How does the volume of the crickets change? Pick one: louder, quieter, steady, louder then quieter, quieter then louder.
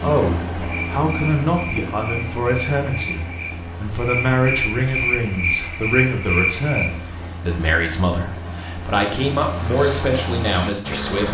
louder.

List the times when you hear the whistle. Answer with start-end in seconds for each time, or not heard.
not heard.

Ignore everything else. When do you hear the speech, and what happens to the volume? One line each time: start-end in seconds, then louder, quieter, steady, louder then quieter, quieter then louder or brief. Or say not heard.
0.0-11.3 steady.